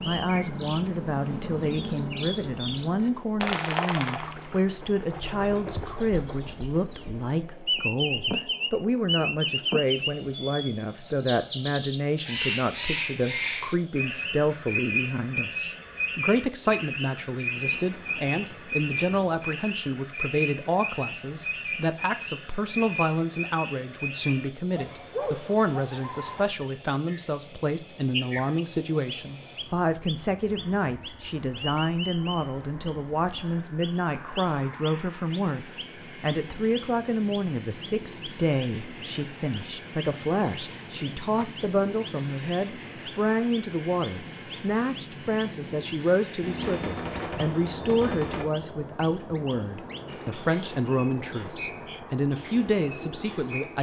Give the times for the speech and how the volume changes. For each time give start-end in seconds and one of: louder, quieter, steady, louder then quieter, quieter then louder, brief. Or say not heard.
0.0-53.7 steady.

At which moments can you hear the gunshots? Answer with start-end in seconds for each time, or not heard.
17.5-19.5, 46.4-48.5.